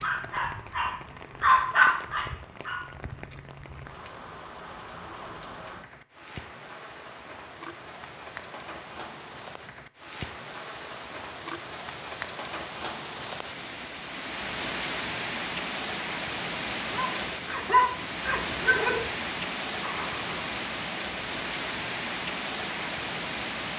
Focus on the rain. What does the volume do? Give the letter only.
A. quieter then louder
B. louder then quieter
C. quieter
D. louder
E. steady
D.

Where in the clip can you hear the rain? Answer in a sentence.
The rain can be heard from 0.0 to 23.7 s.